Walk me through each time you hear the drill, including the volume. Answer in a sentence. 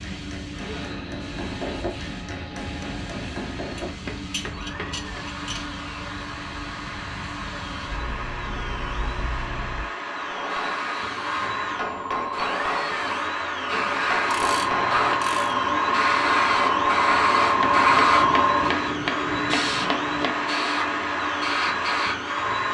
The drill can be heard from 0.0 to 22.7 s, getting louder.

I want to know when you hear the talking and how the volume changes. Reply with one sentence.
You can't hear the talking here.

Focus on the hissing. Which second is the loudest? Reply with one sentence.
The loudest moment of the hissing is at 18 seconds.